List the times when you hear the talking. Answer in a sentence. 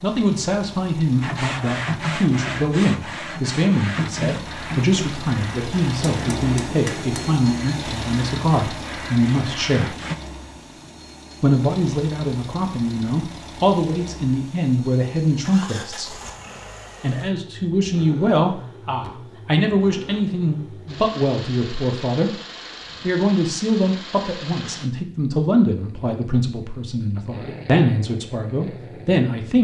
The talking can be heard from 0.0 to 9.9 s, from 11.4 to 16.1 s, from 17.0 to 22.3 s and from 23.0 to 29.5 s.